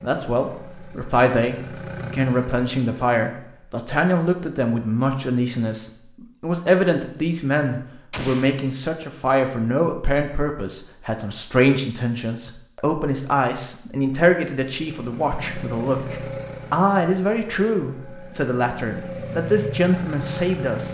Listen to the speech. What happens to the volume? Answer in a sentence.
The loudness of the speech stays about the same.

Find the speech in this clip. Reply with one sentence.
You can hear the speech from 0.0 to 20.8 s.